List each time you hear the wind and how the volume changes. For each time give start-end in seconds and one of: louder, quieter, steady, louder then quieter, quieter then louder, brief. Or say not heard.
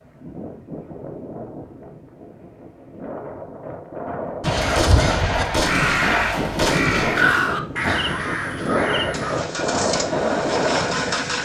0.0-11.4 louder.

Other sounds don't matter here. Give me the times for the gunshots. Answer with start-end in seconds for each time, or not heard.
4.4-7.2.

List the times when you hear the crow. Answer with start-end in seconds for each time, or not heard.
4.5-9.4.